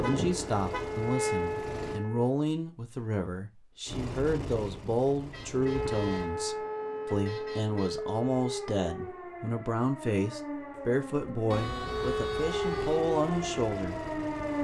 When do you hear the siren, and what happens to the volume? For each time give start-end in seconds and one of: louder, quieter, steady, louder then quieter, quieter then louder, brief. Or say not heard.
0.1-2.4 brief
5.5-14.5 quieter then louder.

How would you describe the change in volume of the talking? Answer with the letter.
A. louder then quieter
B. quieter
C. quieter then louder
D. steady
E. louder
D.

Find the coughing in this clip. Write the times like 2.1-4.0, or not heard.
not heard.